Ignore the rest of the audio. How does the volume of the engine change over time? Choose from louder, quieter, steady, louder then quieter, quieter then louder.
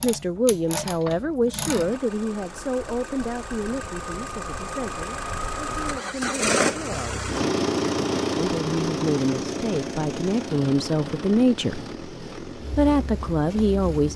louder then quieter.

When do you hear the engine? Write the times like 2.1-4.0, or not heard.
1.6-14.1.